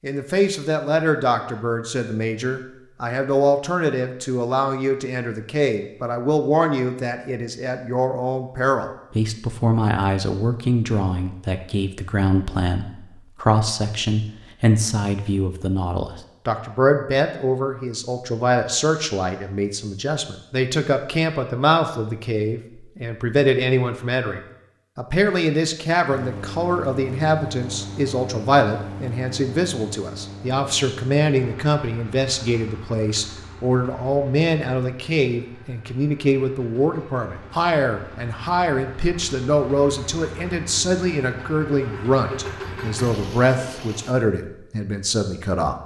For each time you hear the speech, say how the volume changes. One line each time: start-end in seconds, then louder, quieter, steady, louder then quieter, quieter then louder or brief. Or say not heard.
0.0-45.8 steady.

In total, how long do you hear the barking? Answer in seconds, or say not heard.
not heard.